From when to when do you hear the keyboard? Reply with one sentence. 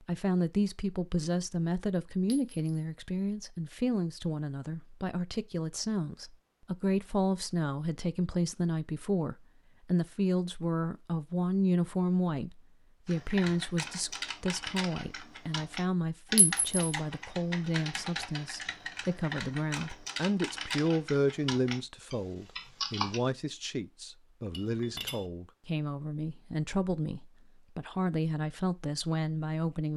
The keyboard can be heard from 13.1 to 23.2 s.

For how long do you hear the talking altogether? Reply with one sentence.
The talking can be heard for 30 seconds in total.